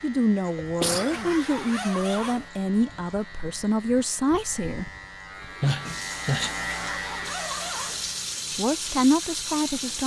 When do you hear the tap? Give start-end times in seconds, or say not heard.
5.3-10.0.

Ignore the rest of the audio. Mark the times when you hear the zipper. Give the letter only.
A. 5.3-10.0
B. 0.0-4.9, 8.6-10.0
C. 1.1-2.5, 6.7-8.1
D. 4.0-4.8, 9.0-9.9
C.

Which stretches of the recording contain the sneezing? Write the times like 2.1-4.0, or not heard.
0.6-1.4, 5.6-6.5.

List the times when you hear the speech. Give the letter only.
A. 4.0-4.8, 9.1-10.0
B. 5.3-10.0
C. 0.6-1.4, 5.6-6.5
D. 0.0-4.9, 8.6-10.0
D.